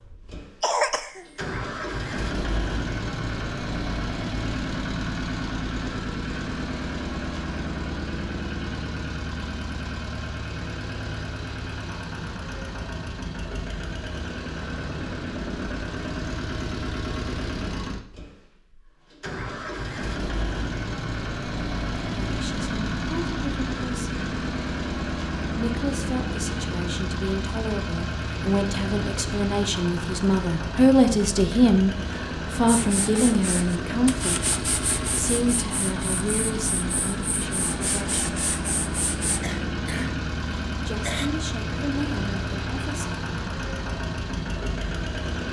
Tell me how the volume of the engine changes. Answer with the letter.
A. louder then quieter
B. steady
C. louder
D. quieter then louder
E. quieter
B.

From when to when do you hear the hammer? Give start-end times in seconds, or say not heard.
not heard.